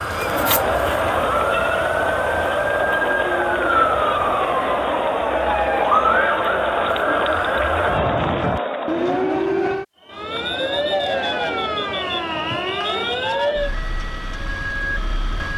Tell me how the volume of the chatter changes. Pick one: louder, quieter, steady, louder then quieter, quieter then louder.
steady.